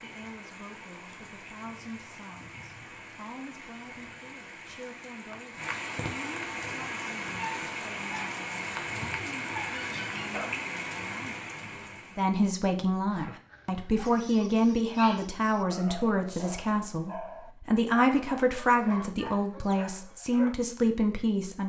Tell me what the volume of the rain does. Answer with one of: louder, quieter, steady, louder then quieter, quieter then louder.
louder.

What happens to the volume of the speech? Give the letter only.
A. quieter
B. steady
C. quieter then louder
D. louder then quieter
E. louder
E.